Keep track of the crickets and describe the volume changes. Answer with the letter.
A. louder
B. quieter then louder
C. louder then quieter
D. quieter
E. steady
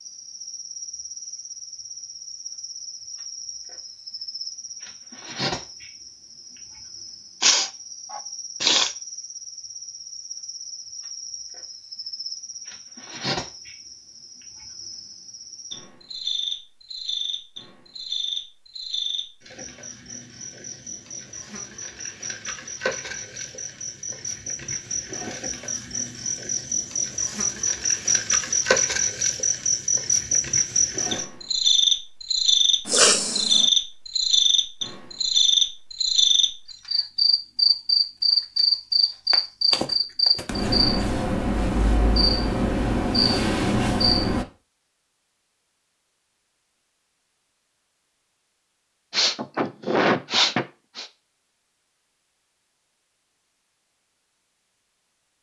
A.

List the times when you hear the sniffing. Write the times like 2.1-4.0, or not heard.
7.4-8.9, 32.9-33.6, 49.1-51.0.